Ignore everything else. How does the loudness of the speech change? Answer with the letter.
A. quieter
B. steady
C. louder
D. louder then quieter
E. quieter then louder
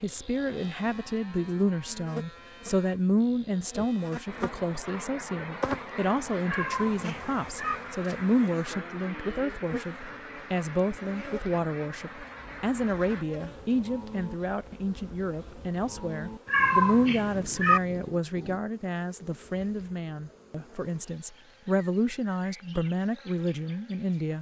B.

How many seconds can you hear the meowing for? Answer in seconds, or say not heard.
3 s.